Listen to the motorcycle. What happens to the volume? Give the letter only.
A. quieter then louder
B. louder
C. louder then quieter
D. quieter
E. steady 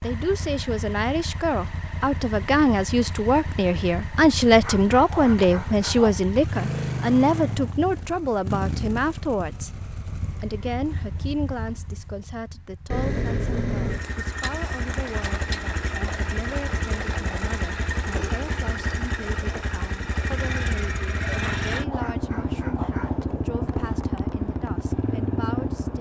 B.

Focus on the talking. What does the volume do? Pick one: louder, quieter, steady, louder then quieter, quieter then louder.
quieter.